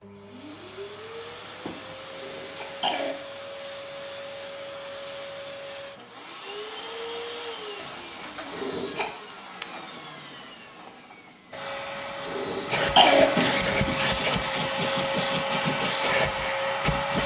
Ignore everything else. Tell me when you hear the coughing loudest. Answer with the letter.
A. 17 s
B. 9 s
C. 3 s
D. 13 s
D.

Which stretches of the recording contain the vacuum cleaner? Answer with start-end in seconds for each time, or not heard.
0.0-17.2.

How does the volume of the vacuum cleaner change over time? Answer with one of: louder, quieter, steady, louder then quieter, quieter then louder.
louder.